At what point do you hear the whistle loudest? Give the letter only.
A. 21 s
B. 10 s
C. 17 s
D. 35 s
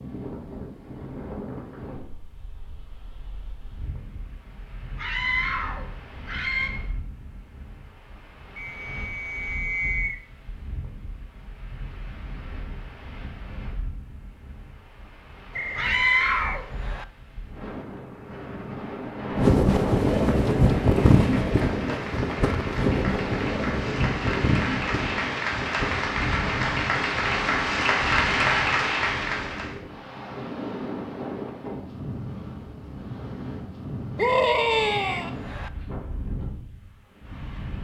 B.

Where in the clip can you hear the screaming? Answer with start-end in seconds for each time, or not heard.
5.0-6.7, 15.8-16.6, 34.1-35.3.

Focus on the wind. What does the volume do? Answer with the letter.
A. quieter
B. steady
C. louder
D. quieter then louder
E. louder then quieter
E.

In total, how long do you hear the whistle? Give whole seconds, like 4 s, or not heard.
5 s.